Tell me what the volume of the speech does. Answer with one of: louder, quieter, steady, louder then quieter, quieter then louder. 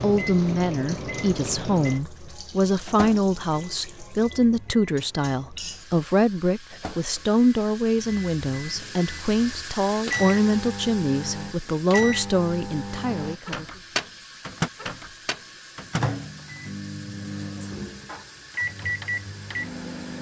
steady.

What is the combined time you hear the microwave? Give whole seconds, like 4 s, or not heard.
20 s.